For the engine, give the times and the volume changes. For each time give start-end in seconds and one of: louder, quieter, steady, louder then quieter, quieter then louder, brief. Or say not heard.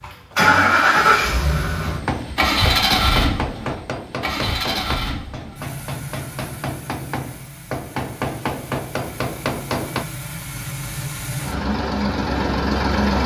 0.0-13.2 quieter then louder.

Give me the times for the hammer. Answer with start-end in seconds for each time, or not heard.
1.8-10.1.